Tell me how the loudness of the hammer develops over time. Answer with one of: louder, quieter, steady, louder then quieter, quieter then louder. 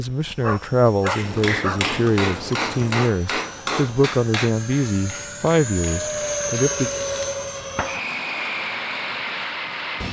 quieter.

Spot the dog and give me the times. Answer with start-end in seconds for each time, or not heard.
0.4-1.8.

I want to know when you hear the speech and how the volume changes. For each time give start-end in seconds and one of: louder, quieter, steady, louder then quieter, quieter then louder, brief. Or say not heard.
0.0-6.9 steady.